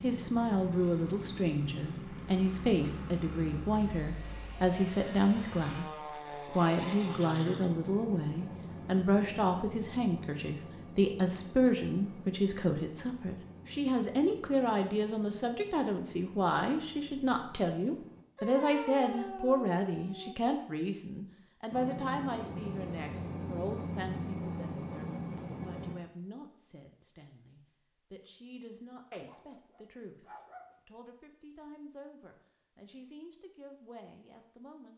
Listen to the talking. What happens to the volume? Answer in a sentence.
The volume of the talking goes down.